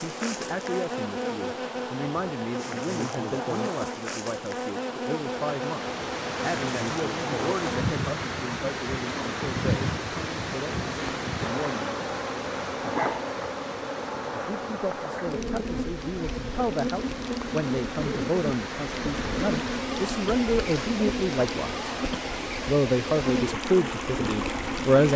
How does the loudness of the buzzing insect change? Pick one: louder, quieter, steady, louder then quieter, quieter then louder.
steady.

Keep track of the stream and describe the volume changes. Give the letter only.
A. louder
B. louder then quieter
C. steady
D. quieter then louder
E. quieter
D.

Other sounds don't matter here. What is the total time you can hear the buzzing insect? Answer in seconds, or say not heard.
25 s.